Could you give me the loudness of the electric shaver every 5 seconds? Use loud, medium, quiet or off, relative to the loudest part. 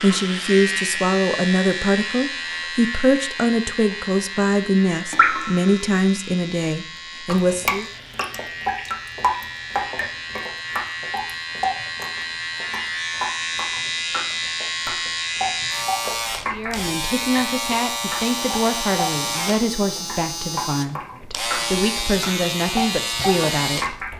loud, medium, loud, loud, loud.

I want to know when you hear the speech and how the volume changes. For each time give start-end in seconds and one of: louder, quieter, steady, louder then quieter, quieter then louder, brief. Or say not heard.
0.0-7.8 steady
16.5-24.1 steady.